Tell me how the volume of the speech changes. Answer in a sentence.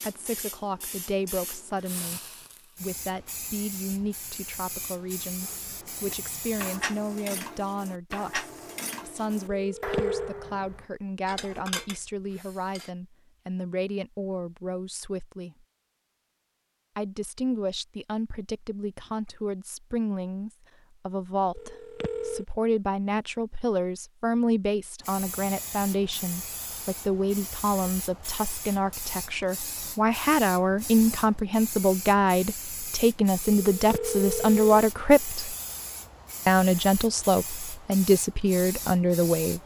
The loudness of the speech goes up.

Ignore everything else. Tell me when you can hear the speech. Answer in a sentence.
You can hear the speech from 0.0 to 15.7 s, from 16.9 to 35.5 s and from 36.5 to 39.6 s.